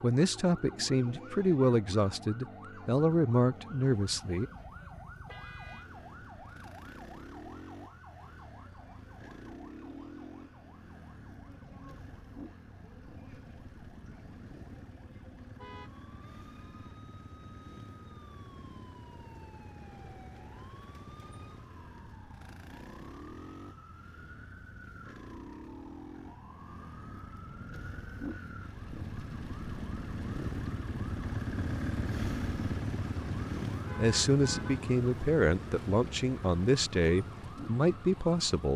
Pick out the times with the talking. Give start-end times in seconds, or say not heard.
0.0-4.5, 34.0-38.7.